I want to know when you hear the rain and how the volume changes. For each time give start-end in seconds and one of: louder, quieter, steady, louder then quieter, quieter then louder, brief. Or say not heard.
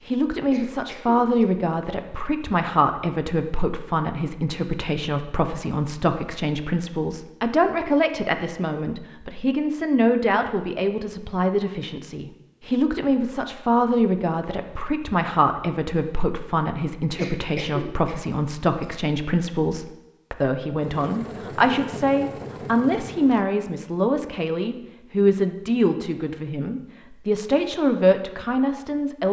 not heard.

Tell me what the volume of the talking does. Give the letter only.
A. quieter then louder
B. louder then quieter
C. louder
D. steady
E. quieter
D.